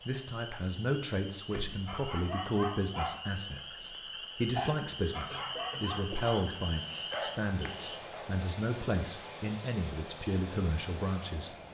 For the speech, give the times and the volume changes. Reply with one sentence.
You can hear the speech from 0.1 to 11.6 s, at a steady volume.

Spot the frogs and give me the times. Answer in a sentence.
You can hear the frogs from 0.0 to 8.0 s.